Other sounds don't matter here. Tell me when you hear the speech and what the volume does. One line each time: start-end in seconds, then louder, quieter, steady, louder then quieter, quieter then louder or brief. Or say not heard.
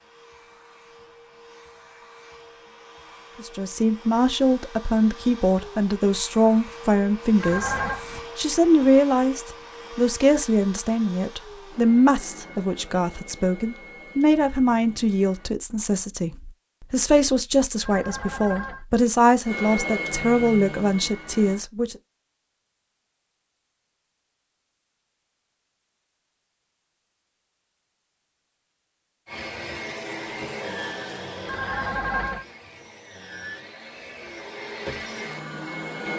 3.4-21.9 steady.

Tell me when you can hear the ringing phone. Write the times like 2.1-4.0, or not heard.
7.4-8.1, 17.8-18.9, 31.4-32.5.